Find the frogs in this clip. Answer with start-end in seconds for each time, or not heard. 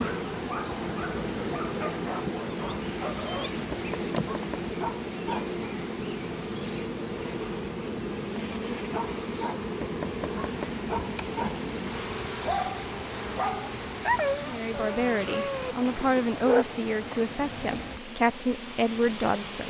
not heard.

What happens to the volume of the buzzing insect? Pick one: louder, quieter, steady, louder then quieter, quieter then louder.
quieter.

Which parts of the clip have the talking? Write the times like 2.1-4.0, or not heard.
14.4-19.6.